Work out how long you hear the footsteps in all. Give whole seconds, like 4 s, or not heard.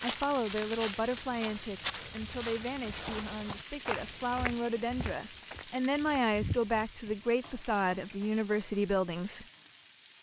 7 s.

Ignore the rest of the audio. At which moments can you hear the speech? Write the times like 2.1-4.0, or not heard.
0.0-9.4.